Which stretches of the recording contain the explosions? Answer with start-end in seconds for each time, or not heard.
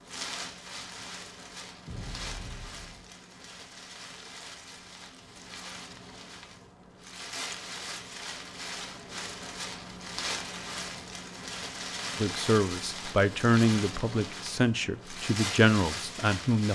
1.9-3.0.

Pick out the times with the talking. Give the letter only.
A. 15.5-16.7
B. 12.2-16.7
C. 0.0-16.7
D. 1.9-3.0
B.